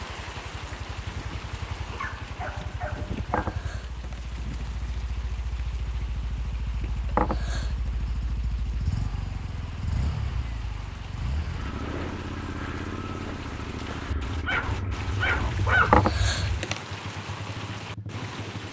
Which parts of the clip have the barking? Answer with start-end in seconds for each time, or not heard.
1.9-3.6, 14.2-16.6.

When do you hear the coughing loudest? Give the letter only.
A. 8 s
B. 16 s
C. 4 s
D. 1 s
B.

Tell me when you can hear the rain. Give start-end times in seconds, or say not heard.
0.0-18.6.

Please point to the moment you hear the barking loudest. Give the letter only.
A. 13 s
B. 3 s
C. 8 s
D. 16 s
D.